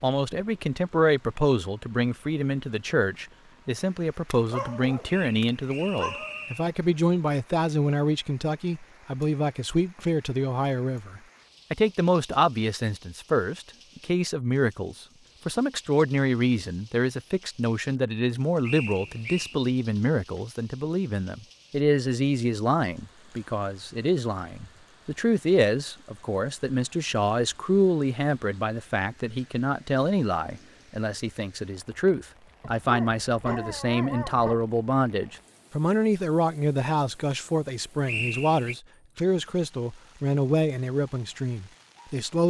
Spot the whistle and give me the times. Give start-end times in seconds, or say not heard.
5.0-6.8, 18.6-19.6, 38.0-38.8.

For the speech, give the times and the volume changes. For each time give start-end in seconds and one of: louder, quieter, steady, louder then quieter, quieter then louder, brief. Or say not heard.
0.0-42.4 steady.